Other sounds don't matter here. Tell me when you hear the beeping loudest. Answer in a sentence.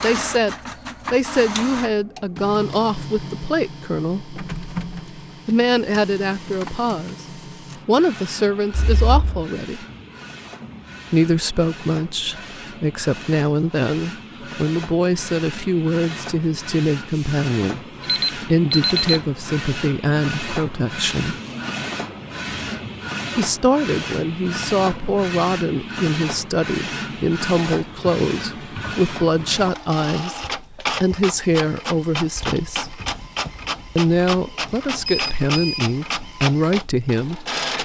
The volume of the beeping peaks at 19 seconds.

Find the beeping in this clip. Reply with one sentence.
The beeping can be heard from 8.7 to 9.4 s, from 18.0 to 19.2 s and from 34.5 to 36.0 s.